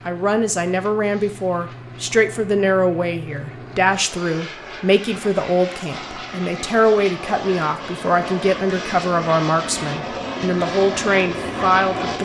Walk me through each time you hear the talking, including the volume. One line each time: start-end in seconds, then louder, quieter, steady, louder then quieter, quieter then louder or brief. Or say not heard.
0.1-12.2 steady.